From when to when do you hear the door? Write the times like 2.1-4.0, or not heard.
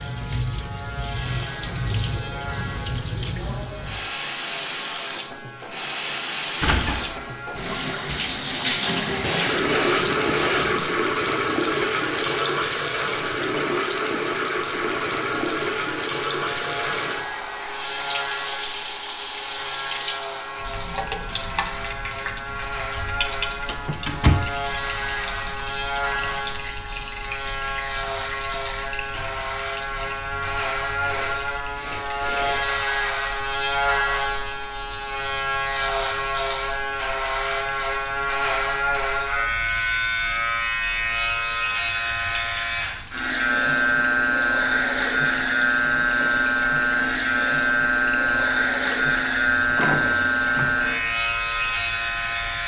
6.6-8.4, 23.6-24.4, 49.8-50.8.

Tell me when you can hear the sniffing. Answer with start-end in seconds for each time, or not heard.
9.1-10.9, 30.4-32.6.